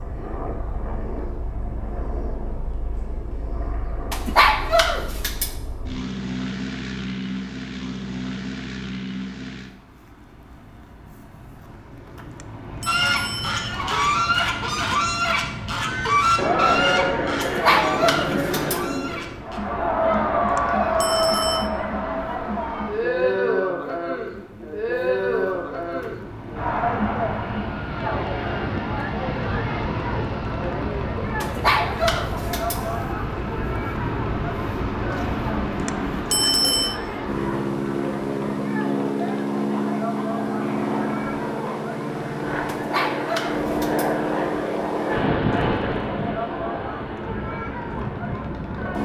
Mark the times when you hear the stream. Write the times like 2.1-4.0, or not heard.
not heard.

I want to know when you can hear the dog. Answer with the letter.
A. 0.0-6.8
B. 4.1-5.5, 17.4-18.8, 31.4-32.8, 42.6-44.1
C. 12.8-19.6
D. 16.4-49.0
B.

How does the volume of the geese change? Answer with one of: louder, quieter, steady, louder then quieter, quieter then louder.
quieter.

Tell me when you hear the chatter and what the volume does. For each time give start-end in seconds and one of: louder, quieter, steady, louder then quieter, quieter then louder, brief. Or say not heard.
16.4-49.0 quieter.